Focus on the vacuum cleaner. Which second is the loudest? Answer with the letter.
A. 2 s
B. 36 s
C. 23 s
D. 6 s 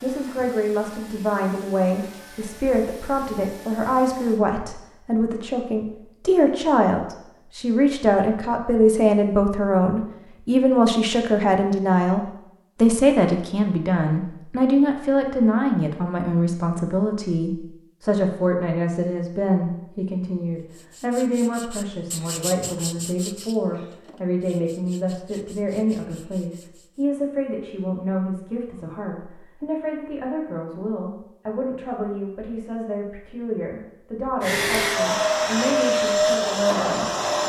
B.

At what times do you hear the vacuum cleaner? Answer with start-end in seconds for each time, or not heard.
0.0-4.4, 34.4-37.4.